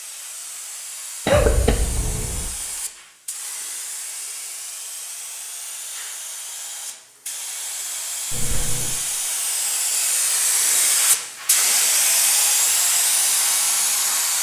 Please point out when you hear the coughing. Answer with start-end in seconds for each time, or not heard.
1.2-2.5, 8.3-9.0.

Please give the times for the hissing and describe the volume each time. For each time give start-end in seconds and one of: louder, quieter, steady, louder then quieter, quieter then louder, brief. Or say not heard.
0.0-14.3 louder.